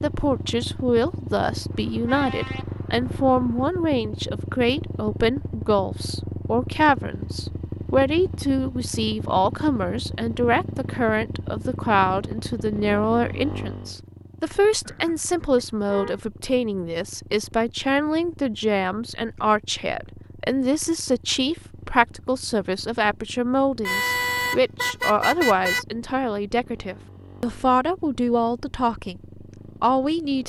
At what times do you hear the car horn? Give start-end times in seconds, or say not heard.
1.7-3.6, 14.8-16.2, 23.9-25.9.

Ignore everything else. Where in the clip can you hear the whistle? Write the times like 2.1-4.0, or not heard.
not heard.